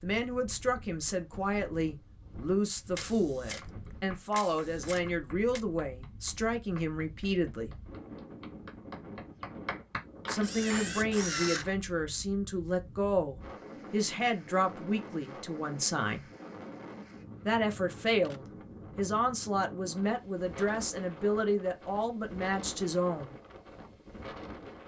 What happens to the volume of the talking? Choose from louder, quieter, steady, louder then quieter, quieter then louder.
steady.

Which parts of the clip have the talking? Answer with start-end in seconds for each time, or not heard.
0.0-7.8, 10.2-16.3, 17.4-23.4.